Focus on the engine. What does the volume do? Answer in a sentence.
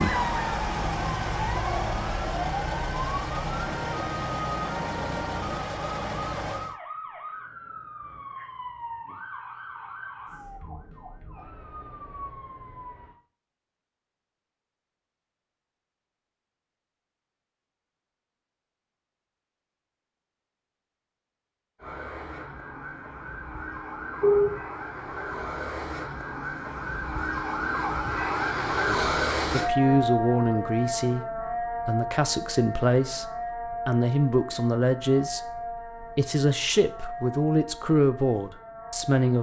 The volume of the engine stays about the same.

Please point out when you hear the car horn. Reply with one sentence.
The car horn can be heard from 24.2 to 24.6 s.